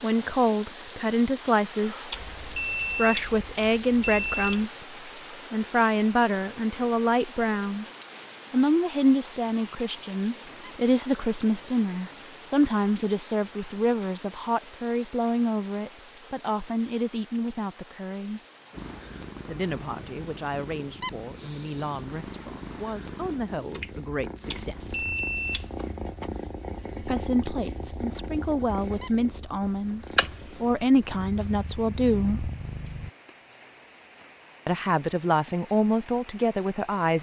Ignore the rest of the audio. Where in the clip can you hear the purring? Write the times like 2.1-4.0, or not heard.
18.7-33.1.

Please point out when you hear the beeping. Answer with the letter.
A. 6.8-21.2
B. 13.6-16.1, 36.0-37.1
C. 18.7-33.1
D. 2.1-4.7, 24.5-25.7
D.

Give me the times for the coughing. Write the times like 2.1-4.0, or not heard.
not heard.